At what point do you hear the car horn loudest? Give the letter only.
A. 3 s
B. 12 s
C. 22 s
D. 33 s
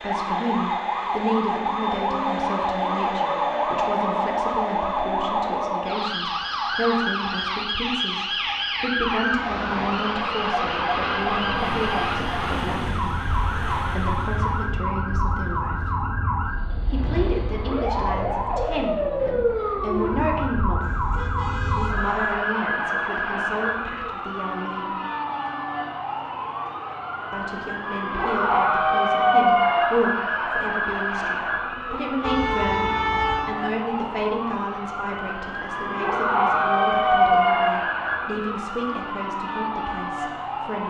D.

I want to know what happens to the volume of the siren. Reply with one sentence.
The volume of the siren stays about the same.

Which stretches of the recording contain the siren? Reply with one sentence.
You can hear the siren from 0.0 to 40.8 s.